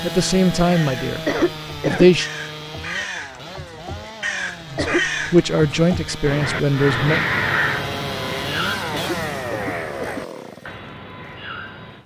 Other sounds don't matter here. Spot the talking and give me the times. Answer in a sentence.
The talking can be heard from 0.0 to 1.2 s, from 1.9 to 2.3 s and from 4.7 to 7.2 s.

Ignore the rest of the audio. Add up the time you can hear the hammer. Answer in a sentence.
The hammer can't be heard in this clip.